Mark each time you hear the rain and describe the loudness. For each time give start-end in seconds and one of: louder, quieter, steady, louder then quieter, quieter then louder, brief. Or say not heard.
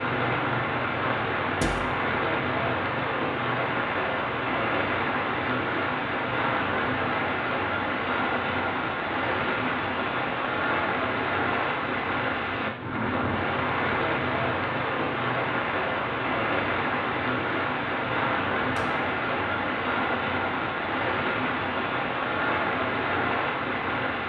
0.0-24.2 steady.